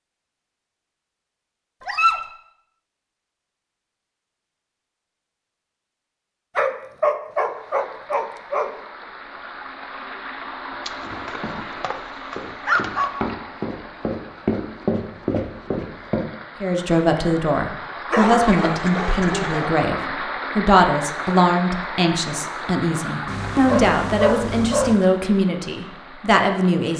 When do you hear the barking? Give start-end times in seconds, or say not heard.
1.8-2.2, 6.5-8.7, 10.8-13.1, 18.1-19.8, 23.2-24.9.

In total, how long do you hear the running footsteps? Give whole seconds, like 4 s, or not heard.
5 s.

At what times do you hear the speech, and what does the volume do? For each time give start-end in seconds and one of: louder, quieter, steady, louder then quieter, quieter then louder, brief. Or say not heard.
16.6-26.9 steady.